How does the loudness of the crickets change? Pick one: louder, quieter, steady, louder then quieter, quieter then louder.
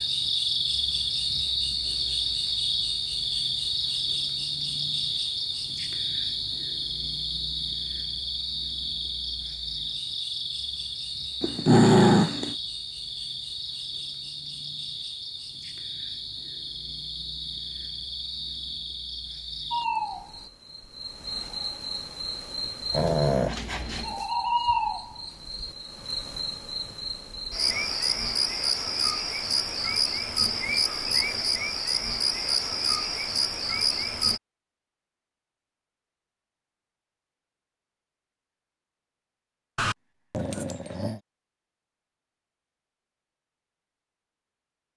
quieter then louder.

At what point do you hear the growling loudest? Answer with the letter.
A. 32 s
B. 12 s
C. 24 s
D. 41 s
B.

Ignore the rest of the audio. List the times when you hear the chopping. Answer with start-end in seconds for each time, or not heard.
not heard.